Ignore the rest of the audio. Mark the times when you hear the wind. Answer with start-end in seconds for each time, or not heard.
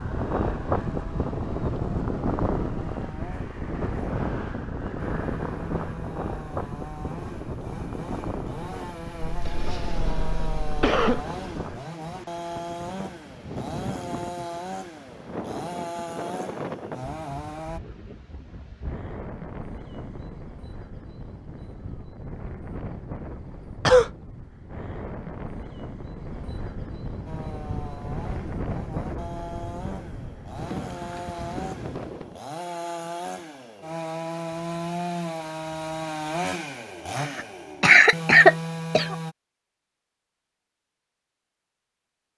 0.0-32.4.